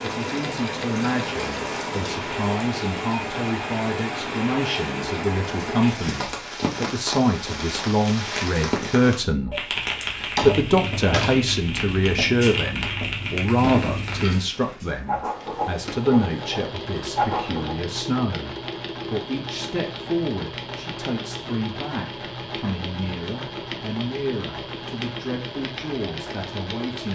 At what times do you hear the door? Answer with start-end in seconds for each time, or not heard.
10.2-11.4, 13.6-16.0.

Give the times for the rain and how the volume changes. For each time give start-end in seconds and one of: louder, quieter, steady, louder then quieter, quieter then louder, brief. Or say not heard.
0.0-14.2 steady.